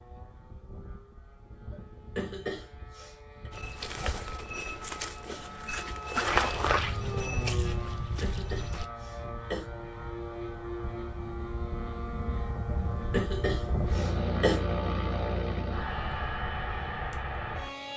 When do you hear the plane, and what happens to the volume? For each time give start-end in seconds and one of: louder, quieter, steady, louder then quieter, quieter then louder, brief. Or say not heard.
0.0-17.9 louder.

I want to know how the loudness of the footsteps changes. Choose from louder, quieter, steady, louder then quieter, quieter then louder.
louder then quieter.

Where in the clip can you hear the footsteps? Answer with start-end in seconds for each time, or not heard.
3.5-8.9.